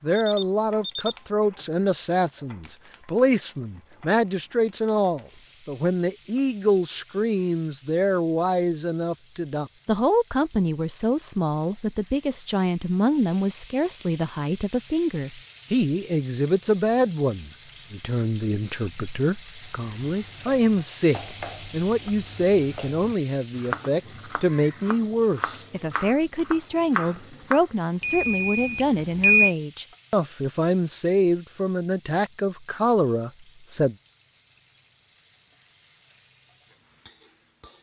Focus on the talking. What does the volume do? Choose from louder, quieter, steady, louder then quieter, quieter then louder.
steady.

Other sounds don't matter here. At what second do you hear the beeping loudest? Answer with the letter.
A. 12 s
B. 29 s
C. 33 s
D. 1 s
B.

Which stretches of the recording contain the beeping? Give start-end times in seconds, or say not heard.
0.1-1.6, 28.0-29.6.